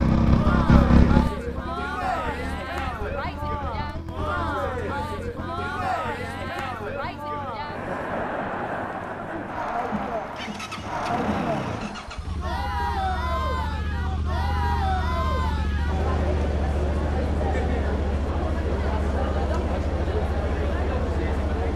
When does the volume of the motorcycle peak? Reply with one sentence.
The loudest moment of the motorcycle is at 1 second.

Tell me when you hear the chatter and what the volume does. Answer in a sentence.
You can hear the chatter from 0.2 to 21.7 s, at a steady volume.